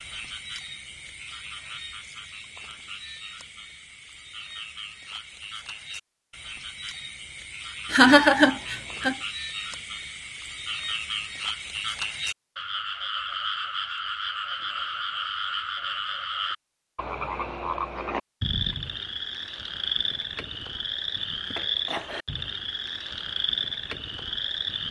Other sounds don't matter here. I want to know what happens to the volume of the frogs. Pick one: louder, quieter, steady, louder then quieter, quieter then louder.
louder.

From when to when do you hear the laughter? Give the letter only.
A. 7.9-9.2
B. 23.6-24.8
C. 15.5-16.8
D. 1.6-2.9
A.